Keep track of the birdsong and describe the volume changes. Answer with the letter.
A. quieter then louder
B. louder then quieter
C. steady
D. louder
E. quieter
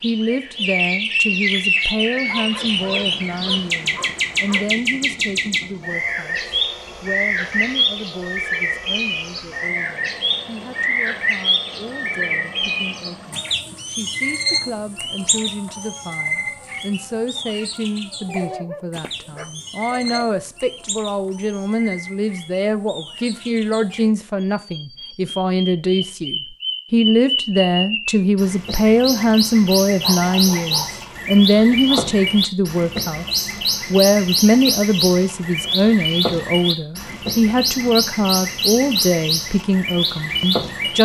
A.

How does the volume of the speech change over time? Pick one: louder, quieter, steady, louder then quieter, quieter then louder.
quieter then louder.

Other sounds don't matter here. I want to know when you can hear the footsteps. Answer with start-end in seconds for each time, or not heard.
not heard.